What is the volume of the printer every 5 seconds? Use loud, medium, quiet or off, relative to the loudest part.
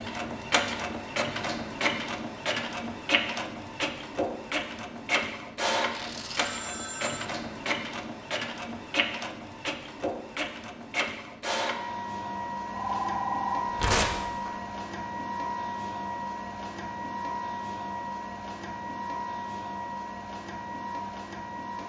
loud, loud, loud, loud, medium.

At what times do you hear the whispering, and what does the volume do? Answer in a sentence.
The whispering can't be heard in this clip.